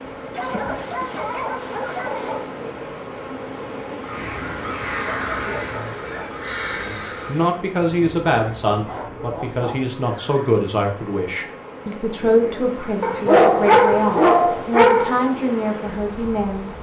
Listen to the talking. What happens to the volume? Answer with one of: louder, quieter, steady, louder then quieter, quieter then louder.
steady.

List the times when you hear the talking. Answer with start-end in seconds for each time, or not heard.
6.8-16.7.